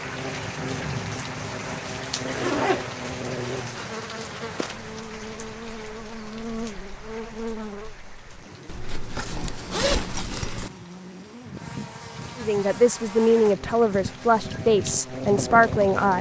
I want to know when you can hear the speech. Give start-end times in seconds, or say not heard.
12.3-16.1.